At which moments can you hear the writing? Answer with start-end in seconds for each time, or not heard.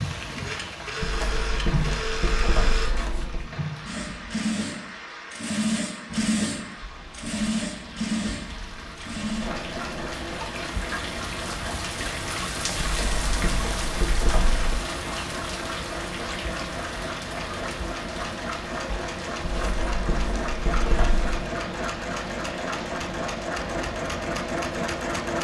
1.0-3.5, 12.8-14.9, 19.4-21.4.